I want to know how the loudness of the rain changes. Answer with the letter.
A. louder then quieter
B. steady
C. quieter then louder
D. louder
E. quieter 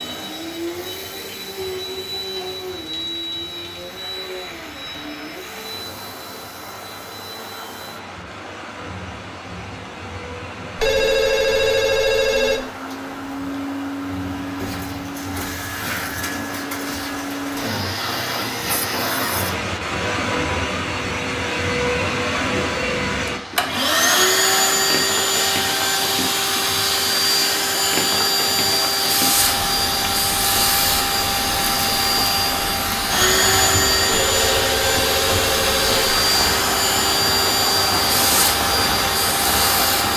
D.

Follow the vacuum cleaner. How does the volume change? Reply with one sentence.
The volume of the vacuum cleaner goes up.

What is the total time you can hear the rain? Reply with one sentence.
You can hear the rain for 40 seconds altogether.